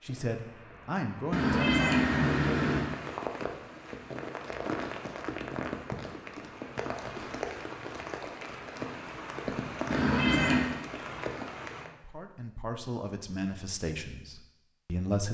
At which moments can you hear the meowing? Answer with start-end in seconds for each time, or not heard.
1.3-3.0, 9.9-10.7.